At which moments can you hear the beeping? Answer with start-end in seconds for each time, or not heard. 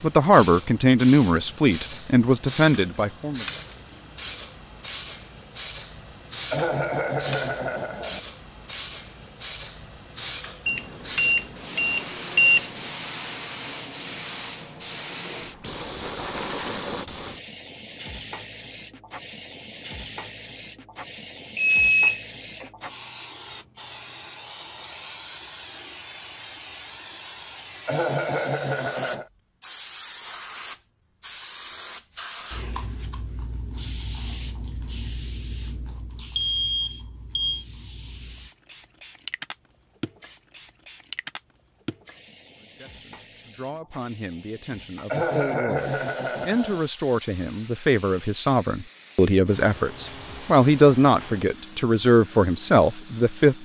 10.7-12.7, 21.6-22.6, 36.4-37.6.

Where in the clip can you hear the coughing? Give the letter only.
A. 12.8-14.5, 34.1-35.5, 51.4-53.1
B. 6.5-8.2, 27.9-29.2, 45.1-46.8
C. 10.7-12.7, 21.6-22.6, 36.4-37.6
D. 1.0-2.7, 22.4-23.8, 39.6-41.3
B.